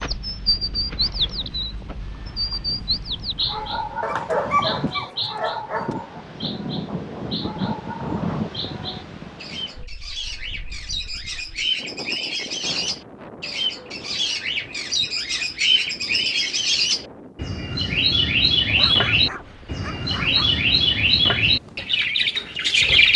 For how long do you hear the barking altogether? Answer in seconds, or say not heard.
4 s.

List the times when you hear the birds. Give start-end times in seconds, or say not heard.
0.0-23.1.